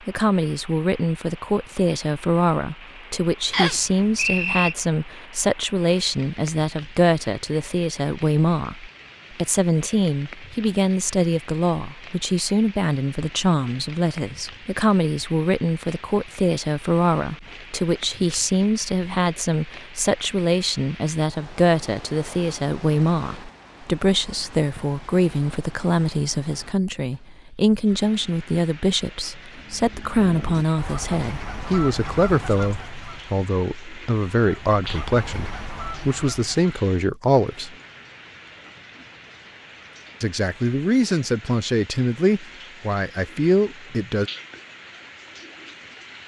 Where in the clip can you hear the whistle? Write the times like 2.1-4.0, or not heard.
3.5-4.8.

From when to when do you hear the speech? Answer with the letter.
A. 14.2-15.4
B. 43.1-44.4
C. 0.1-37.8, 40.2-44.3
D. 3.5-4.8
C.